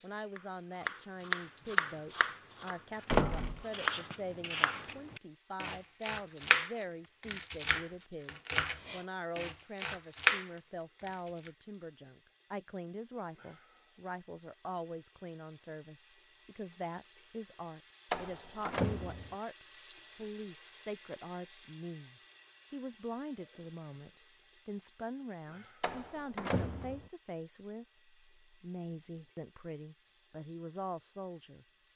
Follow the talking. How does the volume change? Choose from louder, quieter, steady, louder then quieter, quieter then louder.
steady.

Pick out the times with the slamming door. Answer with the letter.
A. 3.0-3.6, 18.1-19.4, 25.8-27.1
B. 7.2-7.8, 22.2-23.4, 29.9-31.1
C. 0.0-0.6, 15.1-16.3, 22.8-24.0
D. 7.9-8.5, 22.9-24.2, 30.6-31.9
A.